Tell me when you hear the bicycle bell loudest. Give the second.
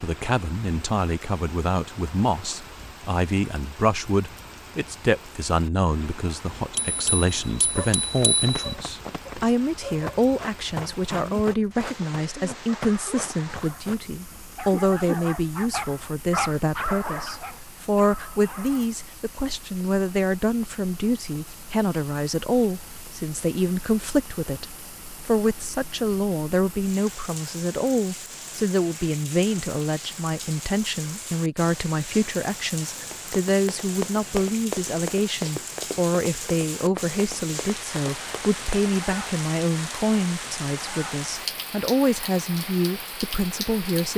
8 s.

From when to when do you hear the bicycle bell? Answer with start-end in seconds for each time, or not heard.
6.8-8.5.